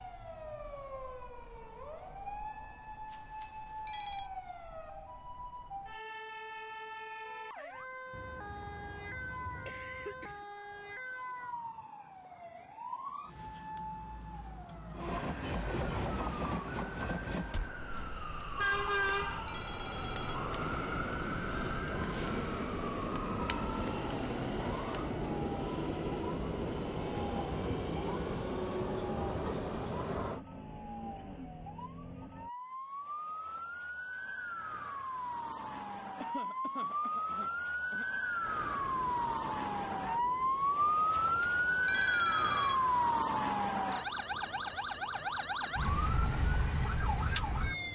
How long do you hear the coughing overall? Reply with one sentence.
The coughing can be heard for 4 seconds in total.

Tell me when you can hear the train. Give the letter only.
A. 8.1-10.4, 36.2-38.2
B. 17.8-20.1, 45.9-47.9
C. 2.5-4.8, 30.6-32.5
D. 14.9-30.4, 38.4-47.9
D.